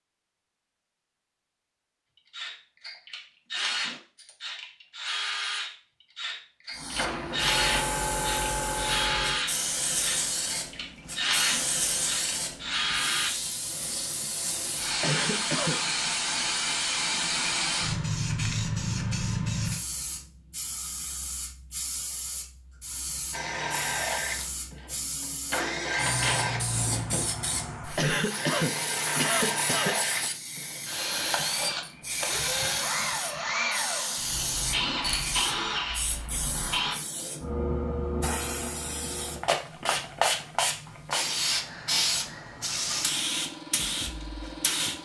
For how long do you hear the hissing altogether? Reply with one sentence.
The hissing can be heard for 38 seconds in total.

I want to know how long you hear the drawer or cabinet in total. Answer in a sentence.
The drawer or cabinet can be heard for 2 seconds in total.